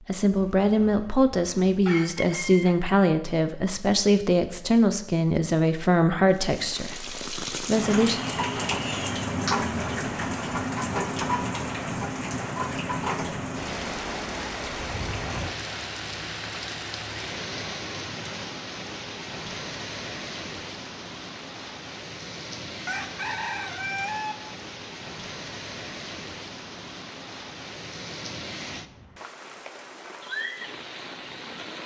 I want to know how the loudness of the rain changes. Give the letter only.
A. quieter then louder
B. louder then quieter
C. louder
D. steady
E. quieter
E.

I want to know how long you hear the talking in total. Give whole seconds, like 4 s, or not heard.
8 s.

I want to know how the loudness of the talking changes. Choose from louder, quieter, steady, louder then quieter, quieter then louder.
quieter.